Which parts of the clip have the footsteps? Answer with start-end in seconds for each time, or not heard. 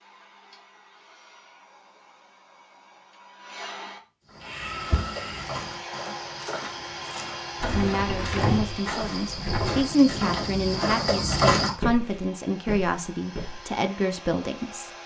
4.2-13.7.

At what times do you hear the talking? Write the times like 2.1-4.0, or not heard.
7.7-14.9.